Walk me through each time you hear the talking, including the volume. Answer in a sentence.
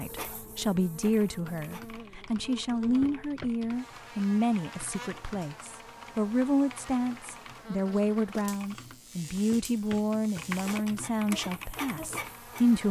The talking can be heard from 0.0 to 12.8 s, at a steady volume.